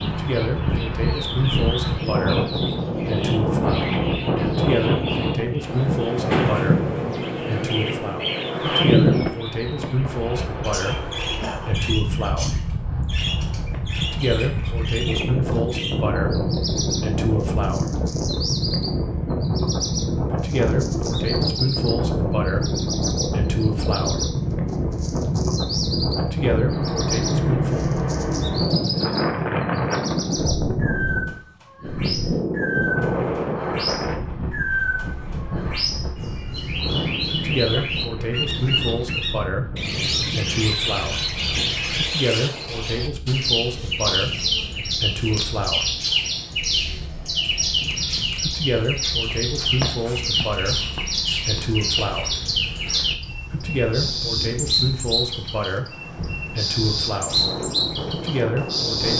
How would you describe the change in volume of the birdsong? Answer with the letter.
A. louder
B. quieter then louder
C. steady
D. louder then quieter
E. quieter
A.